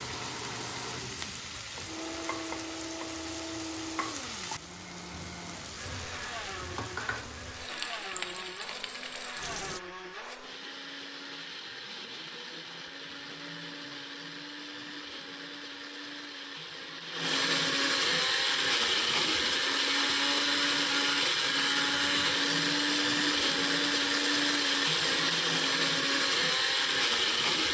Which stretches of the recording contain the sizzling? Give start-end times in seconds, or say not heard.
0.0-9.8.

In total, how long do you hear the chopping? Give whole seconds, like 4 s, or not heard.
not heard.